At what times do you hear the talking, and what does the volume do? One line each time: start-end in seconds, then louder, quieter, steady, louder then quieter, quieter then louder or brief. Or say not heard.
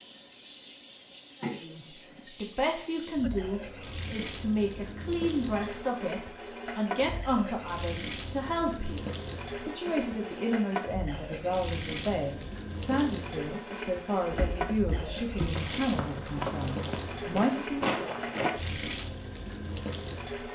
1.4-18.1 steady.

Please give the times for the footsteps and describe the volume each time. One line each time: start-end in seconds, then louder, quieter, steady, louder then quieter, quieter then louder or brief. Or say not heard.
14.2-18.6 louder.